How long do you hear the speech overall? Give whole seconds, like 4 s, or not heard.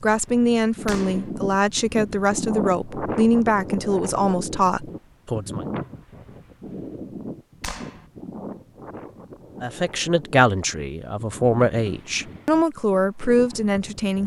10 s.